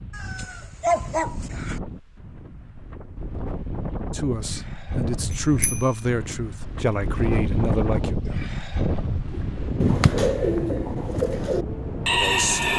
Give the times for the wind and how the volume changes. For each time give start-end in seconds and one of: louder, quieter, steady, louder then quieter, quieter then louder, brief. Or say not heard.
0.0-12.7 louder.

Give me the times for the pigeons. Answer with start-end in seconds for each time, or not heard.
9.3-12.7.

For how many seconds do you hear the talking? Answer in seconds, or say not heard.
4 s.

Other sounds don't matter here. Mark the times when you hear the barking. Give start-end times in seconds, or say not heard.
0.1-1.8.